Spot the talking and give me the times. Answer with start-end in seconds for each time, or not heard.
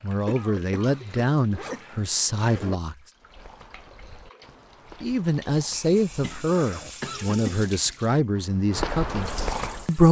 0.0-3.0, 5.0-10.0.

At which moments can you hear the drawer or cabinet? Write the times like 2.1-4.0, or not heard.
not heard.